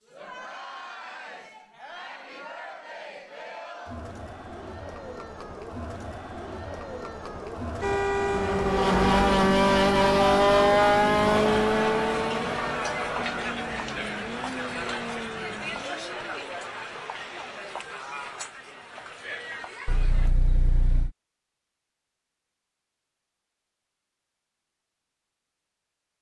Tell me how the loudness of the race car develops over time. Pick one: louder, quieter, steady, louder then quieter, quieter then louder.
quieter.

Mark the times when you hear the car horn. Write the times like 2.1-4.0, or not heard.
7.8-9.3, 19.9-21.1.